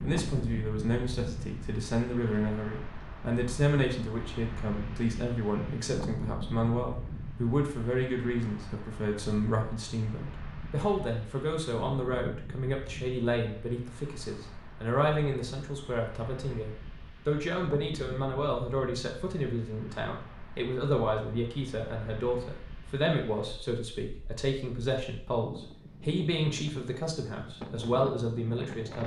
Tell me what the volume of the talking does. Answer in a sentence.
The volume of the talking stays about the same.